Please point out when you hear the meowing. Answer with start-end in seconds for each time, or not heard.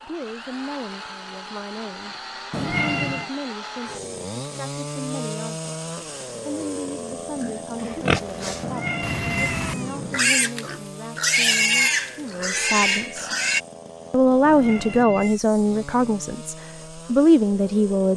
2.5-3.3, 8.6-10.2, 14.4-15.4.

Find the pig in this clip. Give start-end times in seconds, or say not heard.
7.4-13.6.